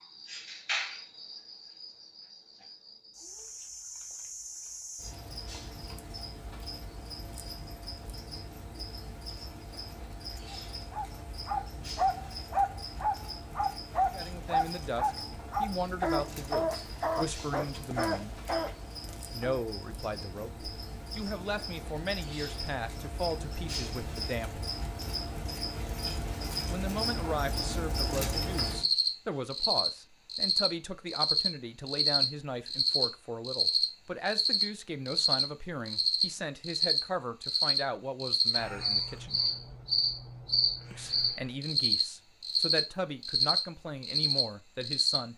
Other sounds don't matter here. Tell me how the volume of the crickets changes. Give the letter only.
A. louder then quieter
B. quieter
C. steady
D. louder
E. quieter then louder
D.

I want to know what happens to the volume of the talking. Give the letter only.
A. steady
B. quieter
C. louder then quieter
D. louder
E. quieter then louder
A.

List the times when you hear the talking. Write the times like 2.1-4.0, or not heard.
14.1-18.4, 19.3-24.6, 26.6-39.4, 40.9-45.3.